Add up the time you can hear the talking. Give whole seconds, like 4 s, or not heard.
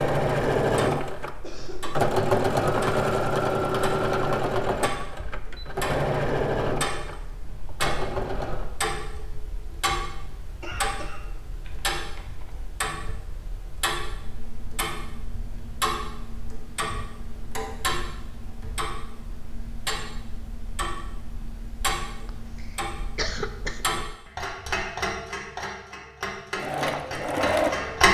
not heard.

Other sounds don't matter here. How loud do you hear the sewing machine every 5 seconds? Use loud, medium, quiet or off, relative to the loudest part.
loud, medium, off, off, off, loud.